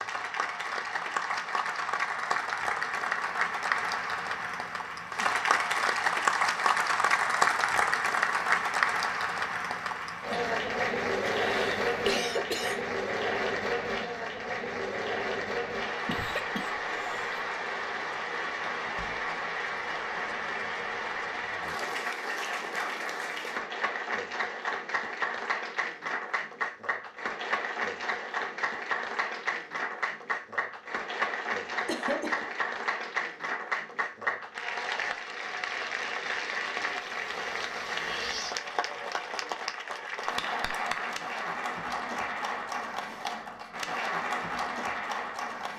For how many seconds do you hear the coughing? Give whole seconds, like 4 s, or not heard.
3 s.